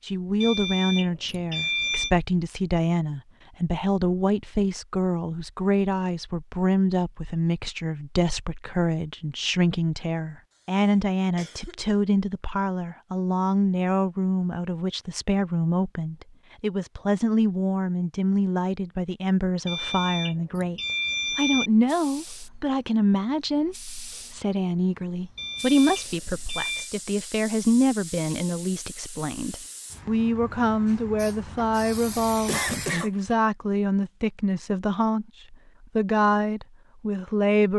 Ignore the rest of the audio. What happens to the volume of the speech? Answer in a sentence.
The loudness of the speech stays about the same.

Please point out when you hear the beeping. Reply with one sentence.
The beeping can be heard from 0.4 to 2.1 s, from 19.6 to 21.7 s and from 25.4 to 26.9 s.